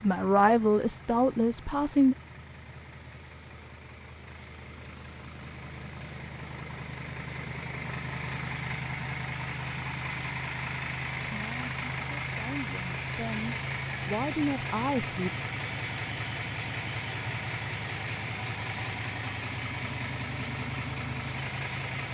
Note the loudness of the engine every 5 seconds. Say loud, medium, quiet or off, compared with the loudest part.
quiet, loud, loud, loud, loud.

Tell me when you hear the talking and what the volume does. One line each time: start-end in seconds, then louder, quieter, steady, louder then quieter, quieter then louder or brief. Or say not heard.
0.0-2.1 brief
11.2-15.3 louder.